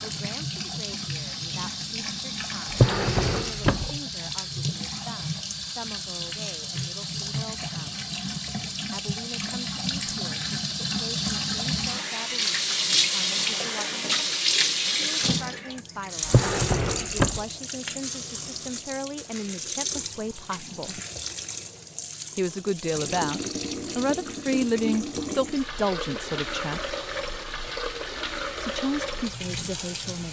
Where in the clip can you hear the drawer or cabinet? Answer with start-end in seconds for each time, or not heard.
2.7-4.0, 16.2-17.4.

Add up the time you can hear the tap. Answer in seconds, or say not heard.
30 s.